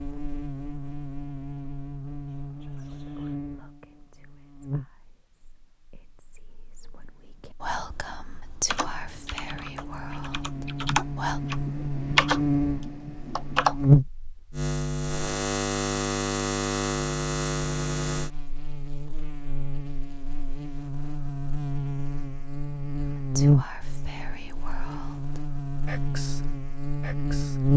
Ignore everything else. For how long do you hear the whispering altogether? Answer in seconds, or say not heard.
14 s.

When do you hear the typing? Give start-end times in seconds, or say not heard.
8.7-13.9.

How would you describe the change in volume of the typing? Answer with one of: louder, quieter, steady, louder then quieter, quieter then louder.
louder then quieter.